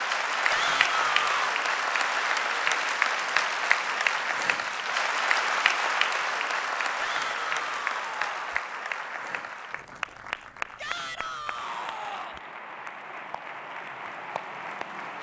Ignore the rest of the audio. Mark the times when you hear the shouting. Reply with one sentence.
The shouting can be heard from 0.5 to 1.6 s, from 7.0 to 8.6 s and from 10.8 to 12.4 s.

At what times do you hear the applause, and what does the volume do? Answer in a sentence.
You can hear the applause from 0.0 to 15.1 s, getting quieter.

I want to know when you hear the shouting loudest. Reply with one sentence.
The volume of the shouting peaks at 1 second.